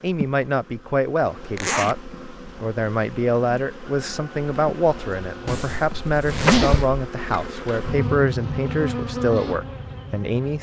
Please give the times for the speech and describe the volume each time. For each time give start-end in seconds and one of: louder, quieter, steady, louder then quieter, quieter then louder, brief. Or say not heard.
0.0-10.5 steady.